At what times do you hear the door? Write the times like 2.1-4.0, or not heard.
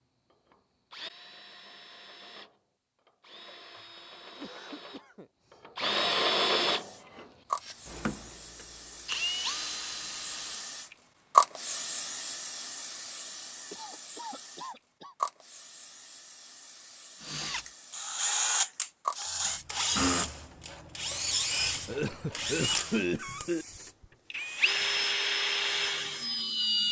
not heard.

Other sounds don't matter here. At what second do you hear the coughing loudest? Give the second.
23 s.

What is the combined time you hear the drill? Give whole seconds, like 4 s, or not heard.
20 s.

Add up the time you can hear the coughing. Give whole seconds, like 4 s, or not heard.
5 s.